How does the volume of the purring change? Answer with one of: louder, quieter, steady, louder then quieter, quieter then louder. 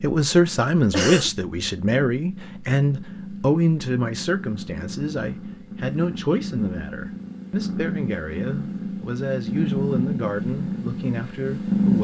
louder.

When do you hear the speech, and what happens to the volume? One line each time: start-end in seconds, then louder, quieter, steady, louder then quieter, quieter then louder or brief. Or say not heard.
0.0-12.0 quieter.